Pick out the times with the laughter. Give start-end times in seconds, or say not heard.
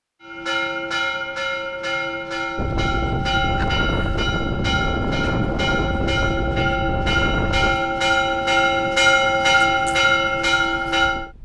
not heard.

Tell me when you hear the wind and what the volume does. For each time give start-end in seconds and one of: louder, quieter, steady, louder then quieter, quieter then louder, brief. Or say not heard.
2.5-11.3 quieter.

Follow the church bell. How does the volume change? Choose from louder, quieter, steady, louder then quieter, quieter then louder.
louder.